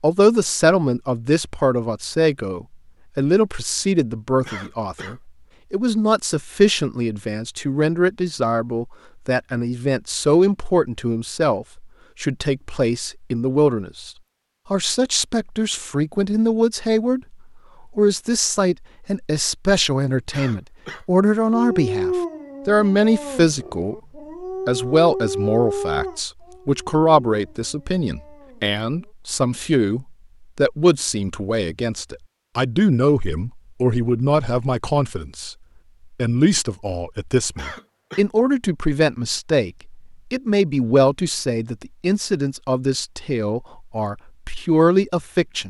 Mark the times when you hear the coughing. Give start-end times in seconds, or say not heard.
4.4-5.2, 20.3-21.1, 37.5-38.2.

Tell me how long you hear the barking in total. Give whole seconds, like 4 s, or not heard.
8 s.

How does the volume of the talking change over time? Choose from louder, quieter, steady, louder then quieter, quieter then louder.
steady.